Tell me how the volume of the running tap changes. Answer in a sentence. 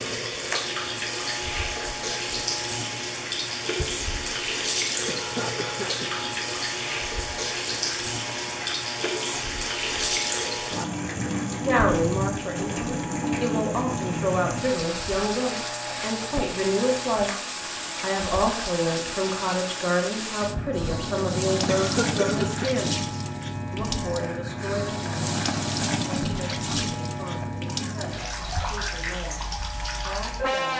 The volume of the running tap stays about the same.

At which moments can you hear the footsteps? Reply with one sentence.
You can't hear the footsteps here.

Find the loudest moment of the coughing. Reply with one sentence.
The loudest moment of the coughing is at 22 seconds.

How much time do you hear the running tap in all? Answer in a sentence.
The running tap can be heard for 31 seconds in total.